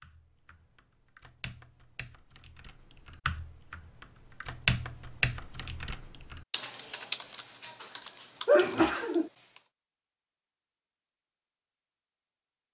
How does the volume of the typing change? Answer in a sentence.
The loudness of the typing goes up, then down.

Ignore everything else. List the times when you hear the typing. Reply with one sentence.
You can hear the typing from 0.0 to 9.6 s.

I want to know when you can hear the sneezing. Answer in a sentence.
You can hear the sneezing from 8.4 to 9.3 s.